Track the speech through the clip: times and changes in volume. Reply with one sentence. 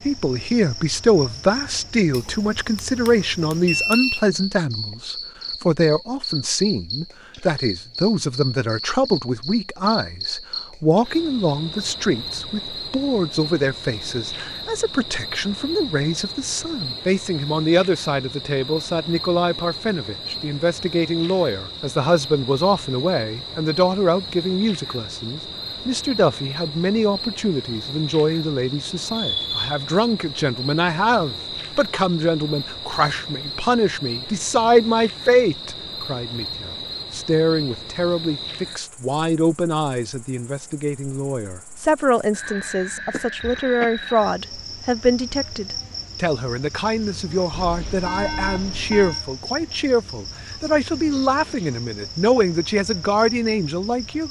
You can hear the speech from 0.1 to 54.2 s, at a steady volume.